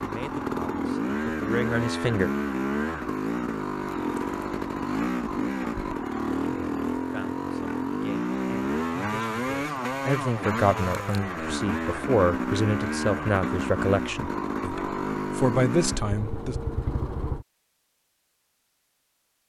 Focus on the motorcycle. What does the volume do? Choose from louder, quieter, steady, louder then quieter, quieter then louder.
steady.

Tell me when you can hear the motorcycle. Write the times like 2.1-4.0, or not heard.
0.0-17.4.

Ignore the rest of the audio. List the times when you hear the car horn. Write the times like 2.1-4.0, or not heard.
not heard.